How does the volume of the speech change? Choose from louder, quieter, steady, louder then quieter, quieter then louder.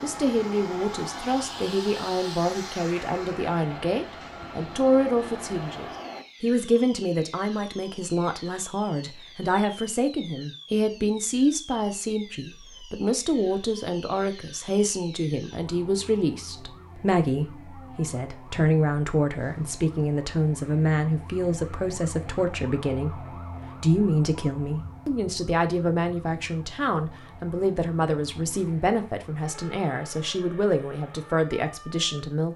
steady.